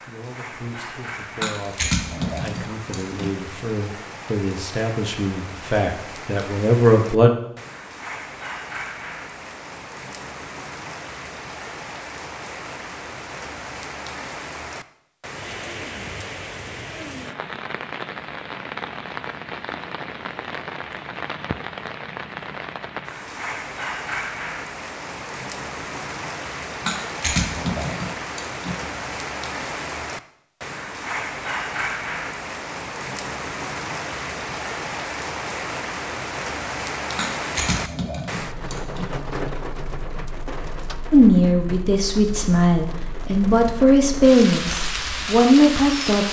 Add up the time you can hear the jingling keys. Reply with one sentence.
The jingling keys can be heard for 6 seconds in total.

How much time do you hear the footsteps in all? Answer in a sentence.
The footsteps can't be heard in this clip.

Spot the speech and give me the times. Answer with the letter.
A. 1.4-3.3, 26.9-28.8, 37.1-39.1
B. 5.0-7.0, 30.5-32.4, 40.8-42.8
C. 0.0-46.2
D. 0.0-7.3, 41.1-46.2
D.